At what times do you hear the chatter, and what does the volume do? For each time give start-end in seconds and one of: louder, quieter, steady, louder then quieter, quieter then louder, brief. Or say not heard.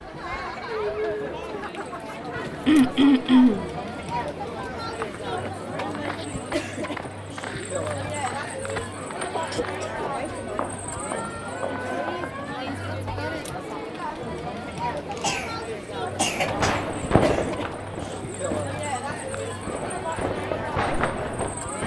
0.0-21.8 steady.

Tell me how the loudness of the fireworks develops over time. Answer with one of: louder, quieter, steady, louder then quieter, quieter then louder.
quieter then louder.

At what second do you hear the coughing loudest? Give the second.
3 s.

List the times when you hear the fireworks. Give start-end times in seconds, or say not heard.
16.2-21.8.